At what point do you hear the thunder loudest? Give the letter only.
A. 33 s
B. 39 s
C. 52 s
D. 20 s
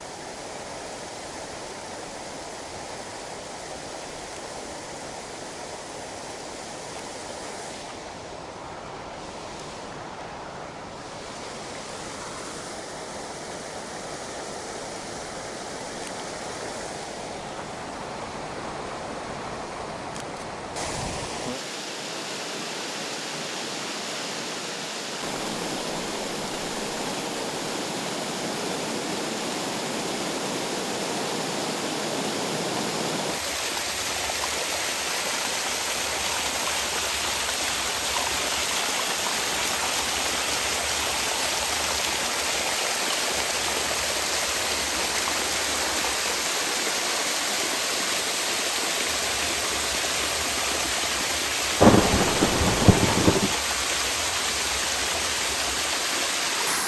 C.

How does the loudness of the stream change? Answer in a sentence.
The volume of the stream goes up.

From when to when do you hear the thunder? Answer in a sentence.
You can hear the thunder from 51.8 to 53.5 s.